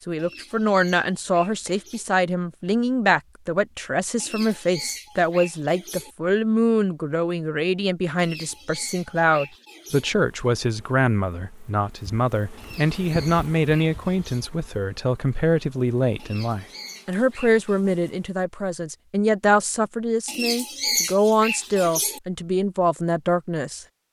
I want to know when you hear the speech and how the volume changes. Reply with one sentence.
The speech can be heard from 0.1 to 23.9 s, at a steady volume.